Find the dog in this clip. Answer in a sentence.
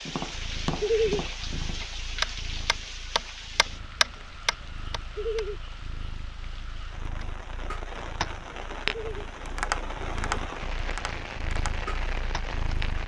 You can't hear the dog here.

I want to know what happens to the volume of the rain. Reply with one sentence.
The volume of the rain goes down, then up.